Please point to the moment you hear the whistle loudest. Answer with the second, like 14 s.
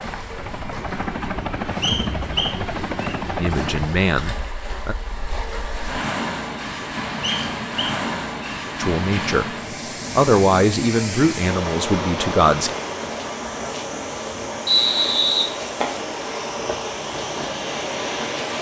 15 s.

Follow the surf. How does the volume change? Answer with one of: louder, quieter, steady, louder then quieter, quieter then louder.
louder.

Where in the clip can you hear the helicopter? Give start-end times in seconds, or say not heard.
0.0-4.0.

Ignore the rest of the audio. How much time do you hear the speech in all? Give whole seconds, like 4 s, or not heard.
5 s.